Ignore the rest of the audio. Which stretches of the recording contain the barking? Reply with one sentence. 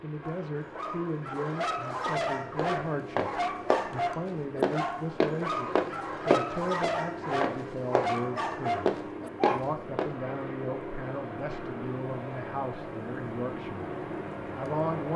You can hear the barking from 0.2 to 9.8 s.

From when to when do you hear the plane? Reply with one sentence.
The plane can be heard from 0.0 to 15.1 s.